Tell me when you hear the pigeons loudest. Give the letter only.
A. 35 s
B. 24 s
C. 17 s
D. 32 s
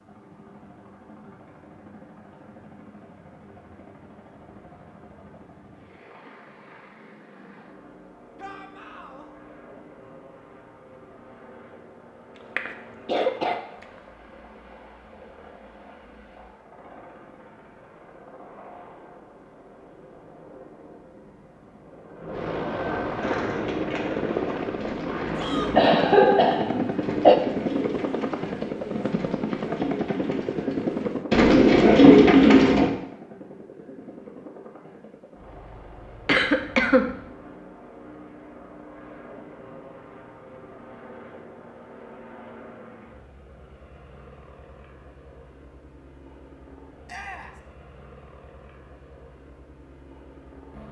D.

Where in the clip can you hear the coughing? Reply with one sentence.
You can hear the coughing from 12.6 to 13.8 s, from 25.8 to 27.4 s and from 36.2 to 37.1 s.